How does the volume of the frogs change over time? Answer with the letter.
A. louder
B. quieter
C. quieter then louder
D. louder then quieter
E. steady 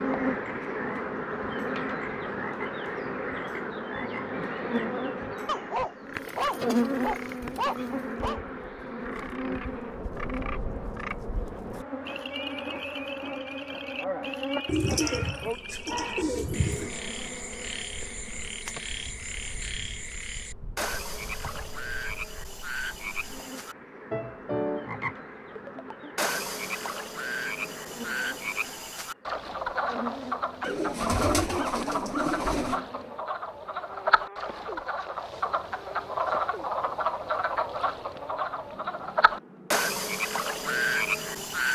A.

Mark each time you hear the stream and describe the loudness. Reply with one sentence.
The stream can't be heard in this clip.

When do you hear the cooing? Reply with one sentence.
You can hear the cooing from 6.2 to 8.1 s, from 14.7 to 16.9 s and from 30.6 to 32.8 s.